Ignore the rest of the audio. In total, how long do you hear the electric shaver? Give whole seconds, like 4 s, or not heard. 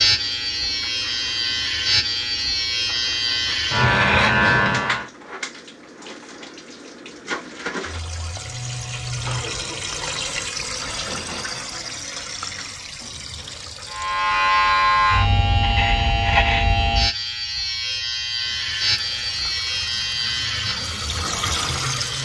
13 s.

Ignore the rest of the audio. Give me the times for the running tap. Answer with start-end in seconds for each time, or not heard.
0.0-14.3, 18.4-22.1.